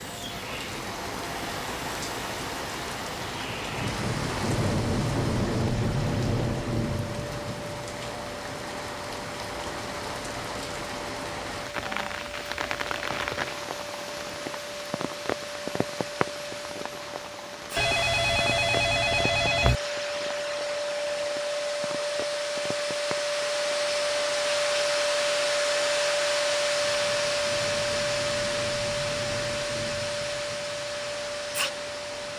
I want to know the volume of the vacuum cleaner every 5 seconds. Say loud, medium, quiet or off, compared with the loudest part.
quiet, quiet, quiet, medium, loud, loud, medium.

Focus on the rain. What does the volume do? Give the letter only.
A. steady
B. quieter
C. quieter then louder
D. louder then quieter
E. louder
B.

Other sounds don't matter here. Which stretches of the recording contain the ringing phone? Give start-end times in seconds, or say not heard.
17.8-19.8.